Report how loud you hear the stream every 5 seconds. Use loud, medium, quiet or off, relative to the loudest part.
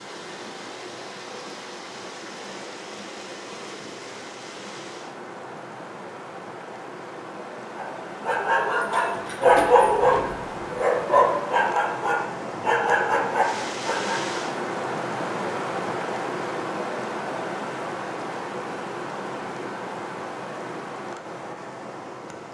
medium, medium, loud, loud, medium.